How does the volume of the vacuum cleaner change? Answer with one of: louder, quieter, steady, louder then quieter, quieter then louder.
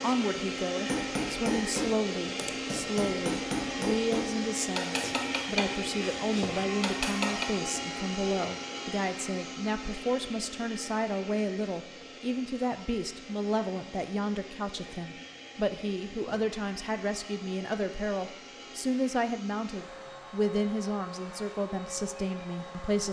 quieter.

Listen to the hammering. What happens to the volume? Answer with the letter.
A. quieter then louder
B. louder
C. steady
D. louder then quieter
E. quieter
C.